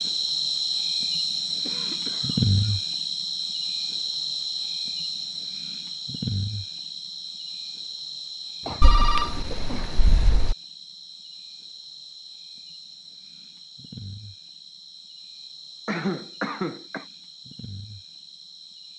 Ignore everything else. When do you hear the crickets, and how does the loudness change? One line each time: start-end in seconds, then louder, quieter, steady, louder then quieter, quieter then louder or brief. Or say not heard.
0.0-18.9 quieter.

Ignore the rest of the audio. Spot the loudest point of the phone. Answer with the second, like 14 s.
9 s.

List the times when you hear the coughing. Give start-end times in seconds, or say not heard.
1.6-2.9, 8.6-10.0, 15.8-17.1.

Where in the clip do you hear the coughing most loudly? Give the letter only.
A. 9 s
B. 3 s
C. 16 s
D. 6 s
C.